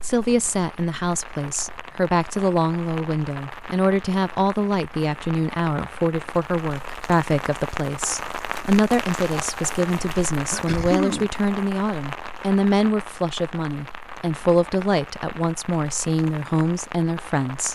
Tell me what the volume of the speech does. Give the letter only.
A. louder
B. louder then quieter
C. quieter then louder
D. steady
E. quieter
D.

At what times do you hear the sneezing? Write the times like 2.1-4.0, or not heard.
10.5-11.3.